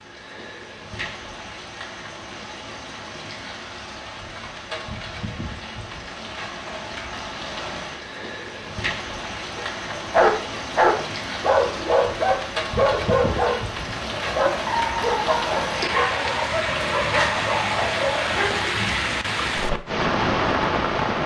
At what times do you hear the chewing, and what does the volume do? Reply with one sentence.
You can't hear the chewing here.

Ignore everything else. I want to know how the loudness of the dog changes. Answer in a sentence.
The volume of the dog goes down.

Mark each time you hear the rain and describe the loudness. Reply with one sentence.
You can hear the rain from 0.0 to 21.2 s, getting louder.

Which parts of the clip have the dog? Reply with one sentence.
You can hear the dog from 9.6 to 18.7 s.